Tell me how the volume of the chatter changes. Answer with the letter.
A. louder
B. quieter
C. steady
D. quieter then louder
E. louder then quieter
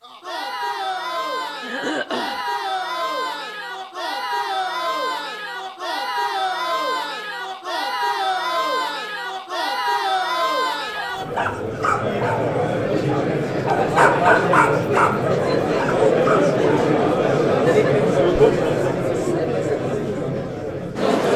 A.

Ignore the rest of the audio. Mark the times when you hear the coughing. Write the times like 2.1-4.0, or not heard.
1.6-2.5.